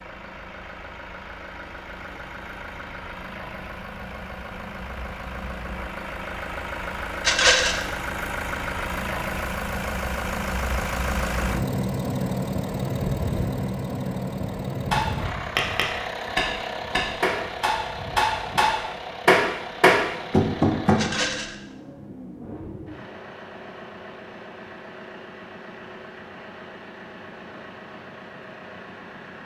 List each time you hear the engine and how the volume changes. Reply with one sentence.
You can hear the engine from 0.0 to 29.4 s, getting louder then quieter.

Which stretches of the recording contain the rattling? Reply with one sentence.
The rattling can be heard from 7.2 to 7.8 s and from 20.9 to 21.6 s.